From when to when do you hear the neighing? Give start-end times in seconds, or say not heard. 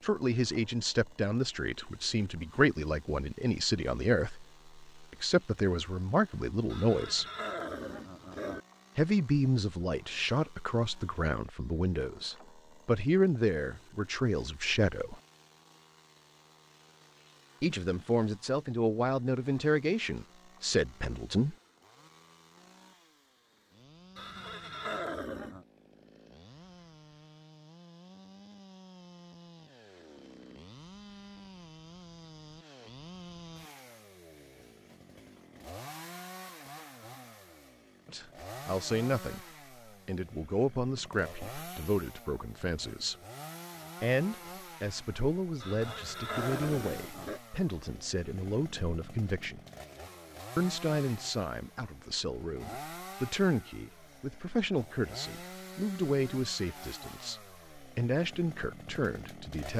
6.7-8.6, 24.1-25.6, 45.6-47.4.